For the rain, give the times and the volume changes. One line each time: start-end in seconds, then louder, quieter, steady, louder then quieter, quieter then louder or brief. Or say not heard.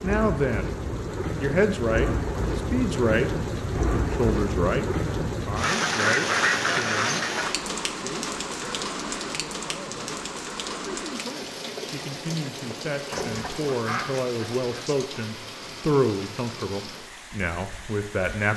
0.0-18.5 quieter.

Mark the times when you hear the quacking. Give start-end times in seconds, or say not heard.
5.6-7.5, 13.1-14.7.